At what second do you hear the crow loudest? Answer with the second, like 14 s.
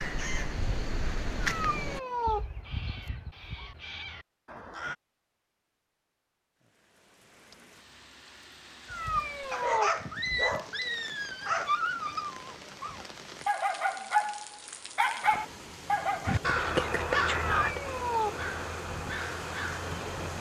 17 s.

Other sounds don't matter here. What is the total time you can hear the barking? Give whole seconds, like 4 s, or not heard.
7 s.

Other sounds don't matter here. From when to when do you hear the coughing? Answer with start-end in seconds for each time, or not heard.
not heard.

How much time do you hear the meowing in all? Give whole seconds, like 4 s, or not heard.
4 s.